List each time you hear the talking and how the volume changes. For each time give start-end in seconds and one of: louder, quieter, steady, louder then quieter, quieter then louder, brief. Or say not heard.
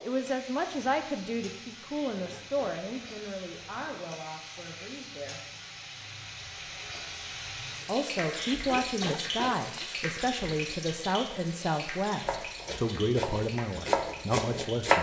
0.0-5.5 quieter
7.8-14.9 steady.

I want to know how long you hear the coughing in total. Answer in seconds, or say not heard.
2 s.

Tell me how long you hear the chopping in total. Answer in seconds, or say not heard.
3 s.